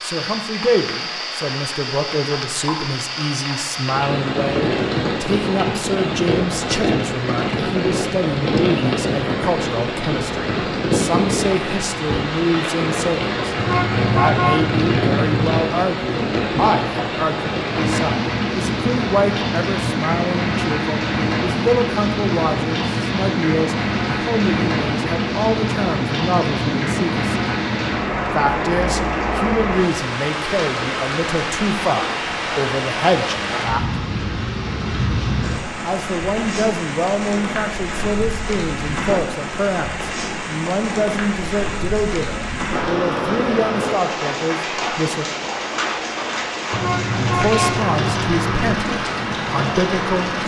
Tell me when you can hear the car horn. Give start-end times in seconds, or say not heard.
13.6-15.6, 46.7-48.8.